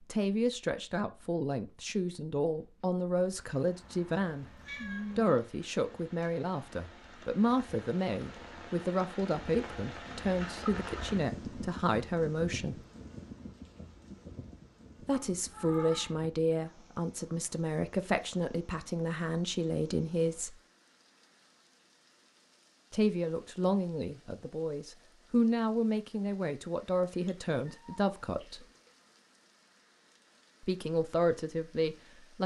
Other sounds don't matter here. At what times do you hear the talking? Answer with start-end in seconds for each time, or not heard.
0.0-4.5, 5.2-12.8, 15.0-20.6, 22.9-28.6, 30.6-32.4.